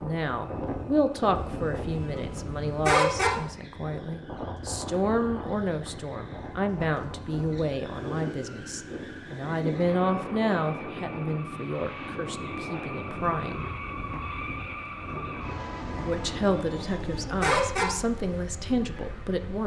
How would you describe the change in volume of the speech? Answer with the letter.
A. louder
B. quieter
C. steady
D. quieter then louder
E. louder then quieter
C.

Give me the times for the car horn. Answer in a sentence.
The car horn can be heard from 1.3 to 3.3 s and from 16.1 to 17.9 s.